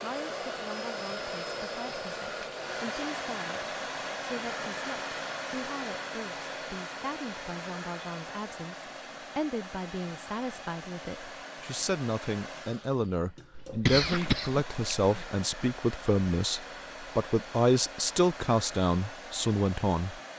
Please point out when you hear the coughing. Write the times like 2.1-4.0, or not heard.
13.6-15.2.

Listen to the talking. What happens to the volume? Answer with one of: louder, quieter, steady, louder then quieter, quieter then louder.
louder.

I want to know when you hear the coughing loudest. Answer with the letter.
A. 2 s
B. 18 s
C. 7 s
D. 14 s
D.